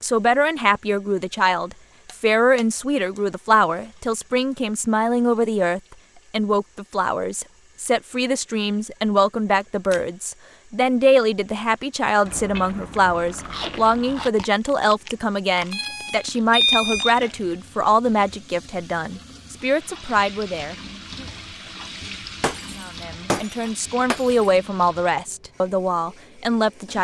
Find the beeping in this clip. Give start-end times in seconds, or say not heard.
15.5-17.3.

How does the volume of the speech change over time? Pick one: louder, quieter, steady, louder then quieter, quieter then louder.
steady.